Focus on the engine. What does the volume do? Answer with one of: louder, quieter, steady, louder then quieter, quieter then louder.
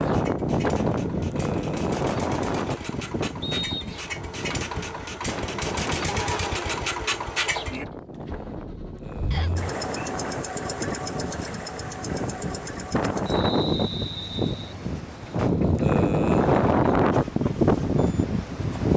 louder then quieter.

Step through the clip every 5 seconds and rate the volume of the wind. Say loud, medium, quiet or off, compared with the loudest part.
medium, quiet, medium, loud.